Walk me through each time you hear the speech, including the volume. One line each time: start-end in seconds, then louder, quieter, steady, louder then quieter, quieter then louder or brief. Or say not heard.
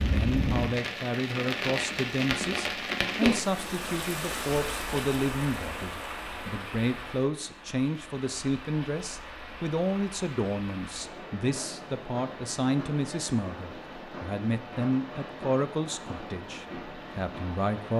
0.0-17.9 steady.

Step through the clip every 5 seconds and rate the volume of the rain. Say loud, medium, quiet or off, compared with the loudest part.
loud, medium, medium, medium.